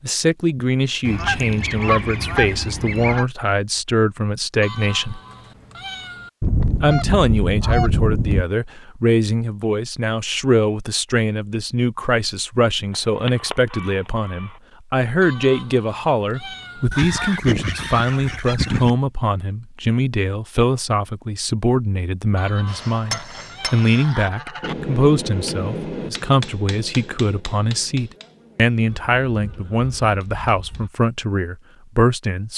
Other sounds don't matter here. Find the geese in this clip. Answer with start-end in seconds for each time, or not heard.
1.1-3.2, 6.4-8.4, 12.9-14.5, 16.9-18.9, 22.9-24.8, 28.9-30.9.